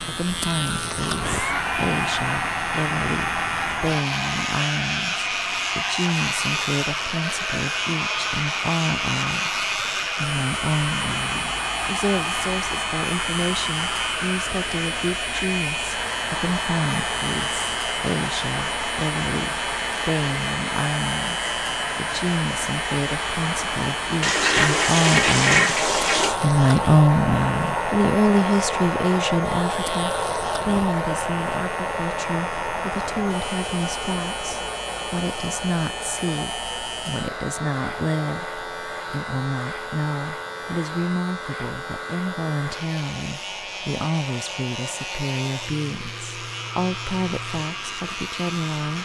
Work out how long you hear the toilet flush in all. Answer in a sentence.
You can hear the toilet flush for 2 seconds altogether.